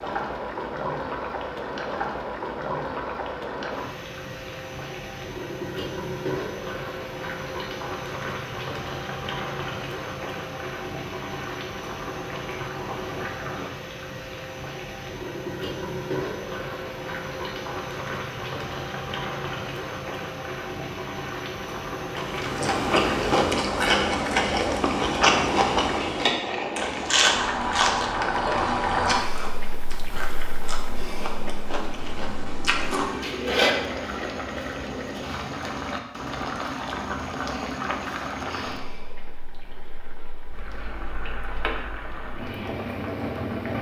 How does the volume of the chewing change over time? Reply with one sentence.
The volume of the chewing goes down.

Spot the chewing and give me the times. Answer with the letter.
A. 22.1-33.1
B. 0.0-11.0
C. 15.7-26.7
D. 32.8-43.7
A.